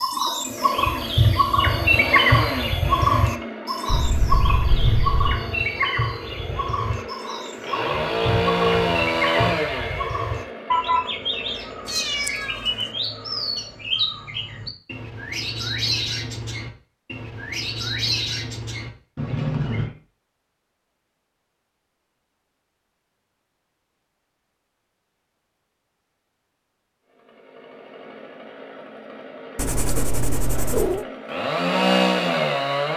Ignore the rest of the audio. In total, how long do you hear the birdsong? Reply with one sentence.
The birdsong can be heard for 20 seconds in total.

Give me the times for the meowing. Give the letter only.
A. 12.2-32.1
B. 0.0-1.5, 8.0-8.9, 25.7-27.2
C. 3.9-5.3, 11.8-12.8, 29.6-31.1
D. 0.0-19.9
C.